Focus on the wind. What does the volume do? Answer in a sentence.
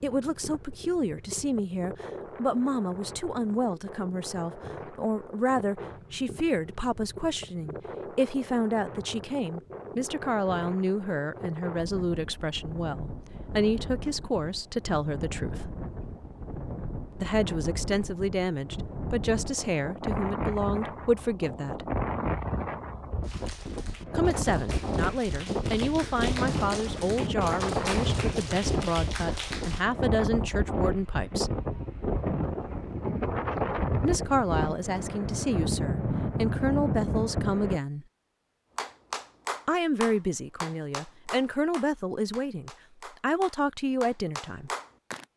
The loudness of the wind goes up.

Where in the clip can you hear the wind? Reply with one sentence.
The wind can be heard from 0.0 to 37.8 s.